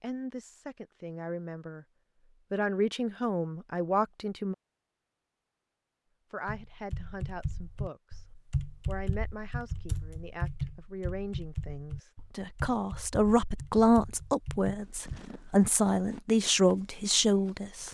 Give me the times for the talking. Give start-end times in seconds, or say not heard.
0.0-1.9, 2.5-4.5, 6.3-8.2, 8.8-17.8.